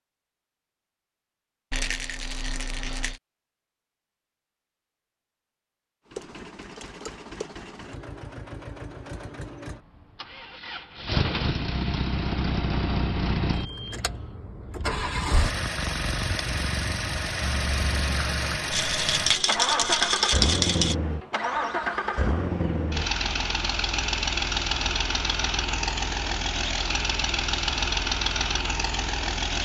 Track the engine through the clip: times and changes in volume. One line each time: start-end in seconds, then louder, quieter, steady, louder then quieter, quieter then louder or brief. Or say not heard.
6.0-29.6 louder.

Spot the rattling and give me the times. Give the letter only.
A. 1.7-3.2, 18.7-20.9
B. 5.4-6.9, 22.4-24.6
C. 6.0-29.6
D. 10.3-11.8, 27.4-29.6
A.